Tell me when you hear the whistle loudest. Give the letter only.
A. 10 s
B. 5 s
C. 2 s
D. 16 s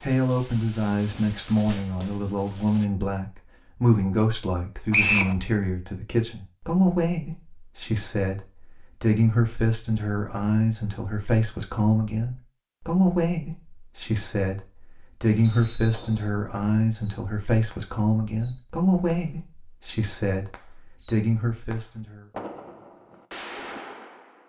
B.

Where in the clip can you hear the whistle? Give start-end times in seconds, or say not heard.
4.9-5.3, 15.4-16.3.